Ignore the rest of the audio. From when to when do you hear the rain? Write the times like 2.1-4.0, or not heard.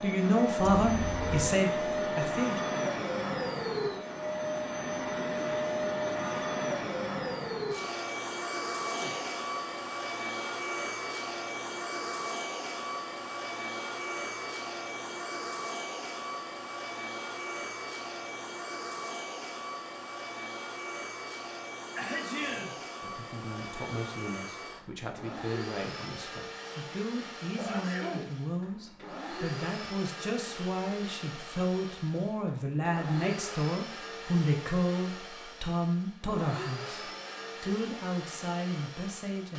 not heard.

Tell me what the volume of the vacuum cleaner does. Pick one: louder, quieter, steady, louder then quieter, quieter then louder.
quieter.